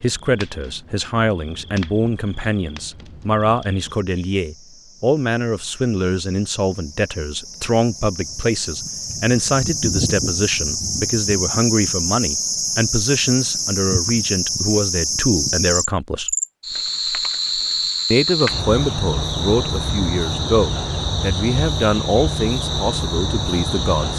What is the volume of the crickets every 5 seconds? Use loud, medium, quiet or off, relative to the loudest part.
quiet, medium, loud, loud, loud.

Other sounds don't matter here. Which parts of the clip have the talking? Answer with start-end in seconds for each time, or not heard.
0.0-16.4, 18.1-24.1.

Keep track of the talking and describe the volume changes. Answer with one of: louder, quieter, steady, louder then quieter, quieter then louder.
steady.